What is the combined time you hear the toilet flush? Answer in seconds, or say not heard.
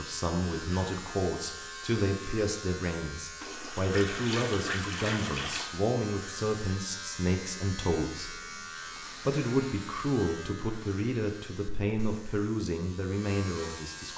2 s.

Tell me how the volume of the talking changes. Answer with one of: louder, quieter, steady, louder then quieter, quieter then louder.
steady.